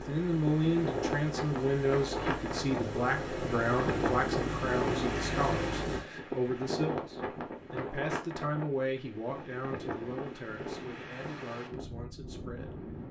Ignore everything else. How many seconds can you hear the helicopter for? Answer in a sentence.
You can hear the helicopter for 6 seconds altogether.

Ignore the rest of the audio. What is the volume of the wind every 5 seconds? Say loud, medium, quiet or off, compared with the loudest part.
loud, loud, medium.